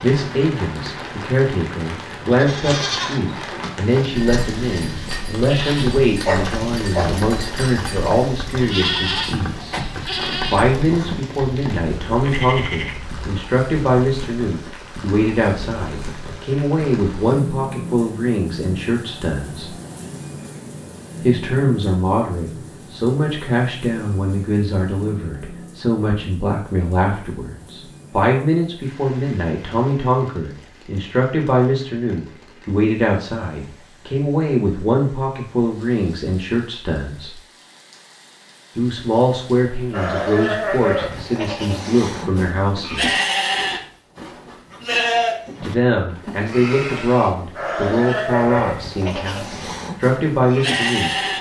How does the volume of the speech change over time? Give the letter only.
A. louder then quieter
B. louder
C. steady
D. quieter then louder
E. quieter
C.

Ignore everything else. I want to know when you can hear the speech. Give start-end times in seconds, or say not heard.
0.0-9.8, 10.5-19.8, 21.2-37.4, 38.8-43.2, 45.6-51.1.